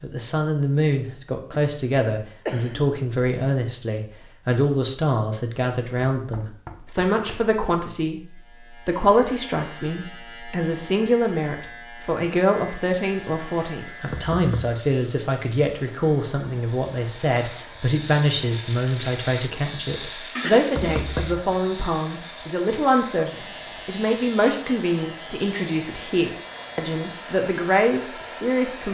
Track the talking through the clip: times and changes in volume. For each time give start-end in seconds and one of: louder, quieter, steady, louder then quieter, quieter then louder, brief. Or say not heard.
0.0-28.9 steady.